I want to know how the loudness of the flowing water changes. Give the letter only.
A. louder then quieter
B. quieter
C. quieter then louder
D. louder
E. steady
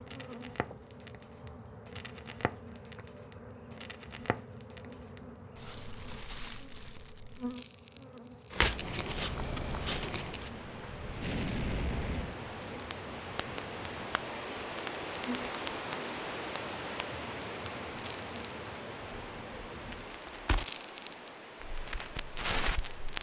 A.